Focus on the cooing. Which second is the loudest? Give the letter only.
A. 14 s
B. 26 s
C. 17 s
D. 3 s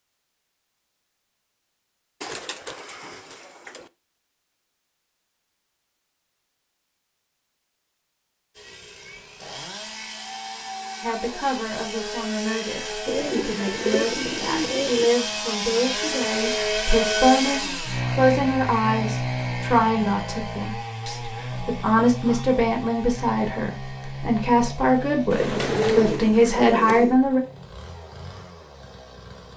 B.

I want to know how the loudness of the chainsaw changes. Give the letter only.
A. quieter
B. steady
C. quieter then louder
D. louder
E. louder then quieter
E.